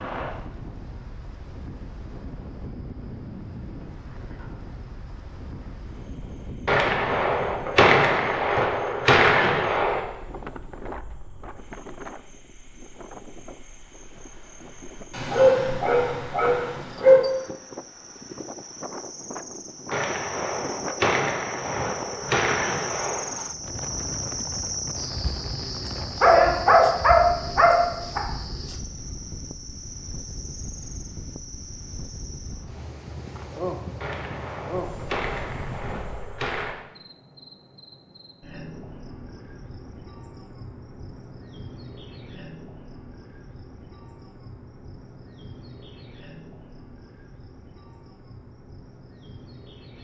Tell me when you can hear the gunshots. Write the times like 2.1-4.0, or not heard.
6.7-10.0, 19.9-23.2, 34.0-36.8.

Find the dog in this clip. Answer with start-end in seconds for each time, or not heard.
15.1-17.2, 26.2-28.2.